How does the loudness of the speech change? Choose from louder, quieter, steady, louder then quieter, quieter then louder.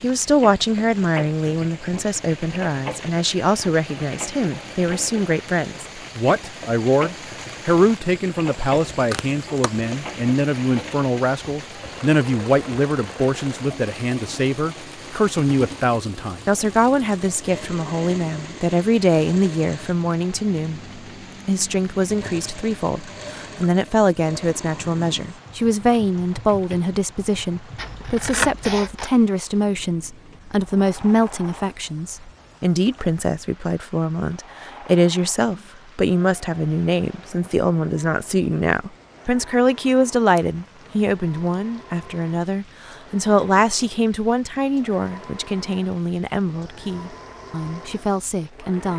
steady.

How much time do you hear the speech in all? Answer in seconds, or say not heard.
49 s.